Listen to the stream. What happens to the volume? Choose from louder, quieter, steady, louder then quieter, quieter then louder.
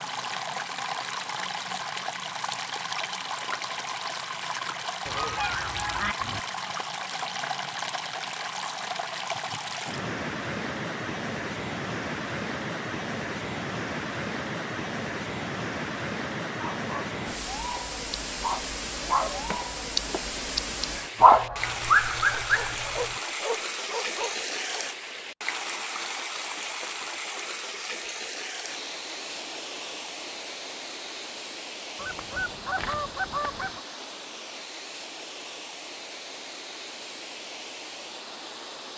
quieter.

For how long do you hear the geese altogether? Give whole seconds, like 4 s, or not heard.
5 s.